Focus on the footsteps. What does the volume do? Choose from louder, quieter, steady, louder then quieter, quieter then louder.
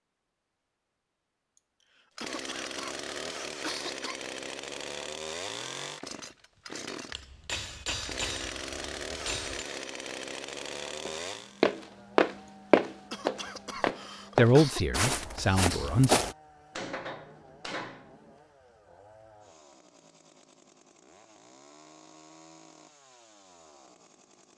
quieter.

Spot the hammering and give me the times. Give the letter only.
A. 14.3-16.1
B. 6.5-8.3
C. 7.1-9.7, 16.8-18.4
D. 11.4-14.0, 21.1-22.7
C.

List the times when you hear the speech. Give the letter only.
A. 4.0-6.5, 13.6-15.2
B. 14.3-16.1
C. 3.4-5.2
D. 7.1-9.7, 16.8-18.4
B.